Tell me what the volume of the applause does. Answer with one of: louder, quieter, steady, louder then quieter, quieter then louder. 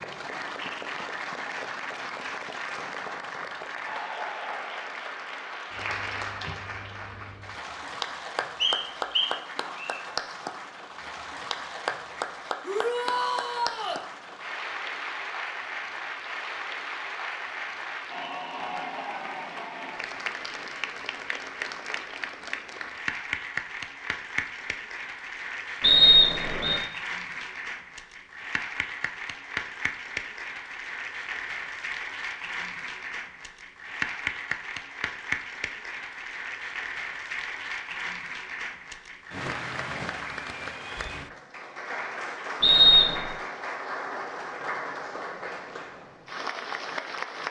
steady.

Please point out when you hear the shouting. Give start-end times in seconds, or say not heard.
12.6-14.1.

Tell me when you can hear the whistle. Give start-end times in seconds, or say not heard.
8.6-9.9, 25.8-26.8, 42.6-43.2.